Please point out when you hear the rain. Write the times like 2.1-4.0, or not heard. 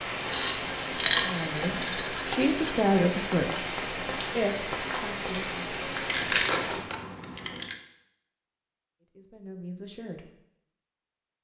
0.0-6.9.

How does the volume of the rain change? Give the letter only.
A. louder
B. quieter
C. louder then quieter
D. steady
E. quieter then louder
D.